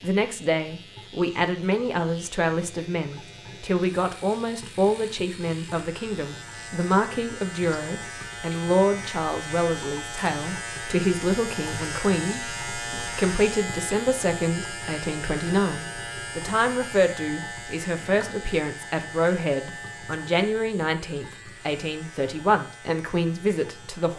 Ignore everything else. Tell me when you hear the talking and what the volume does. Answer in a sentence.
You can hear the talking from 0.0 to 24.1 s, at a steady volume.